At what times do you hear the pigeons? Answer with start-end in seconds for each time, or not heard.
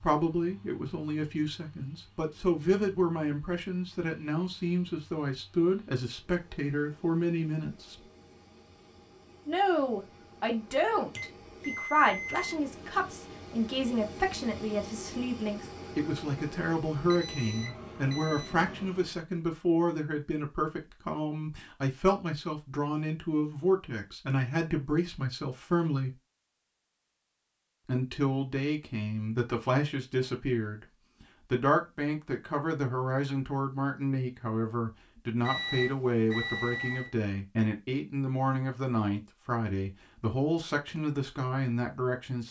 not heard.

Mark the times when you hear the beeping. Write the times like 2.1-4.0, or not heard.
11.1-12.6, 17.1-18.5, 35.4-37.1.